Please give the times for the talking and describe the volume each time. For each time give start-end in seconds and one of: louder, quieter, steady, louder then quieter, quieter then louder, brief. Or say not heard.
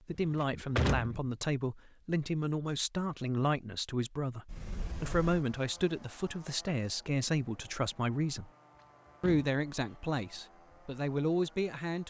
0.1-8.5 steady
9.2-12.0 brief.